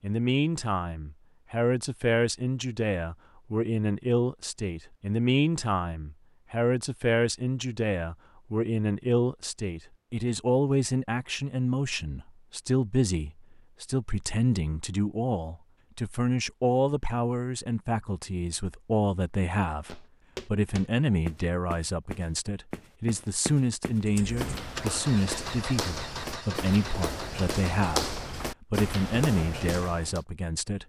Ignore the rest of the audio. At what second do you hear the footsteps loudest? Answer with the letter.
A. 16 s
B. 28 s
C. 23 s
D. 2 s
B.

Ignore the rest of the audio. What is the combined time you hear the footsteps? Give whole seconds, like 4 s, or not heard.
10 s.